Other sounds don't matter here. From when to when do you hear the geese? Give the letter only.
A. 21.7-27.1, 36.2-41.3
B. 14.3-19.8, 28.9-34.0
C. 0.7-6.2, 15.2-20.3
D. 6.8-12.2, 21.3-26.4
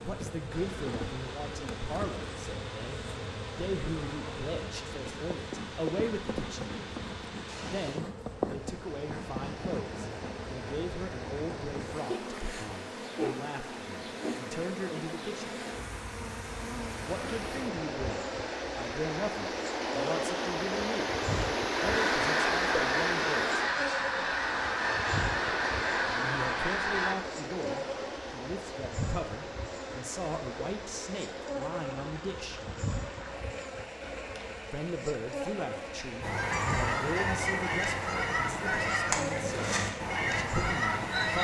A.